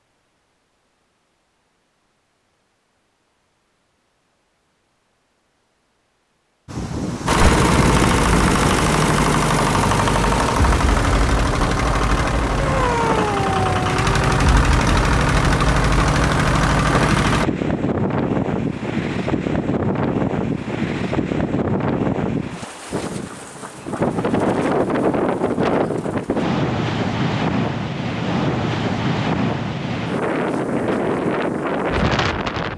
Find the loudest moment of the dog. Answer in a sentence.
The volume of the dog peaks at 13 seconds.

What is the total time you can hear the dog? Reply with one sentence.
The dog can be heard for 2 seconds in total.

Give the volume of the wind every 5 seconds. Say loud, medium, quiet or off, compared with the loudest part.
off, loud, medium, loud, loud, loud, loud.